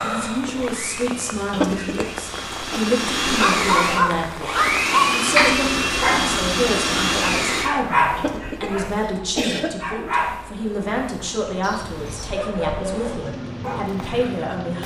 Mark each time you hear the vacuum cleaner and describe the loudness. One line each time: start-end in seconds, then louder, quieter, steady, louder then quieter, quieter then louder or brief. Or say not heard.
0.0-7.7 louder.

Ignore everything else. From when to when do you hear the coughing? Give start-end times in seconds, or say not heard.
1.5-2.8, 8.2-9.7.